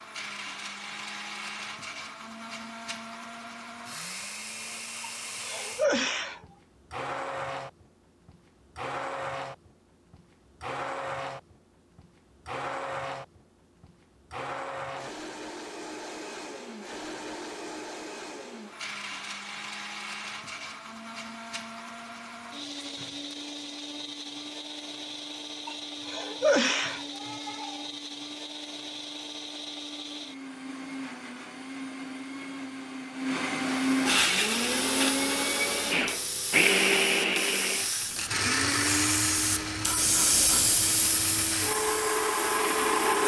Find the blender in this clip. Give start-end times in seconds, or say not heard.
0.0-43.2.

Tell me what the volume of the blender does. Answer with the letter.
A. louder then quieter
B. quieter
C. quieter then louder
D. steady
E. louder
E.